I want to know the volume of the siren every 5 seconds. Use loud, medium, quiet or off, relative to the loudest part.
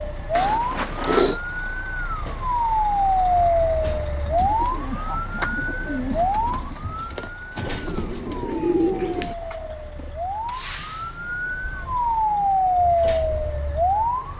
loud, medium, loud.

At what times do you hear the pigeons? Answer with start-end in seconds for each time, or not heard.
4.2-10.1.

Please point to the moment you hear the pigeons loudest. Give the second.
9 s.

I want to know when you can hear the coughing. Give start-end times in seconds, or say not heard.
0.3-1.4.